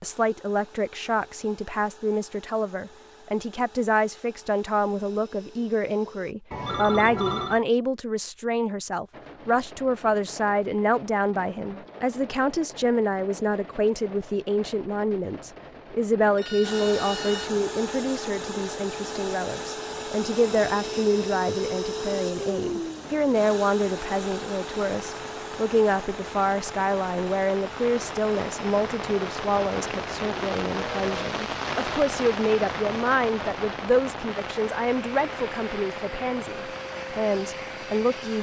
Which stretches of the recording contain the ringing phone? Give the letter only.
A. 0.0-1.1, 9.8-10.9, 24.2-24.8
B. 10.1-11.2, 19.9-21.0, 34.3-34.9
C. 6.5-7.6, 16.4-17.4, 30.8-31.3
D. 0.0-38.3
C.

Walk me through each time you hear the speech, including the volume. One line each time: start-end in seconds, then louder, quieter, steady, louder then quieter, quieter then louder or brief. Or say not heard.
0.0-38.3 steady.